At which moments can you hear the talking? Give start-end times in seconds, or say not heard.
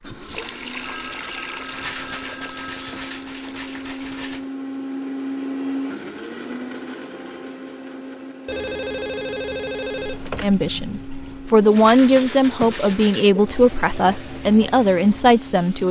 10.4-15.8.